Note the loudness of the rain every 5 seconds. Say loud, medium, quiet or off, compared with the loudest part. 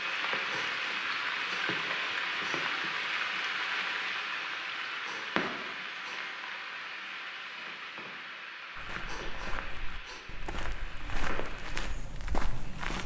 loud, medium, quiet.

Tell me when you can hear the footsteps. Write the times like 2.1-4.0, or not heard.
8.8-13.0.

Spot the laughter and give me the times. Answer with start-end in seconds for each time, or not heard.
not heard.